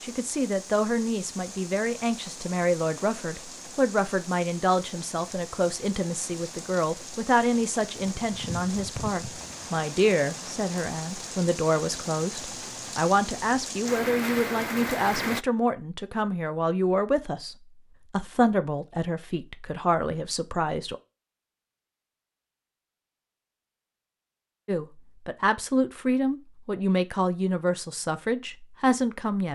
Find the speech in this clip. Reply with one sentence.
You can hear the speech from 0.0 to 20.9 s and from 24.6 to 29.5 s.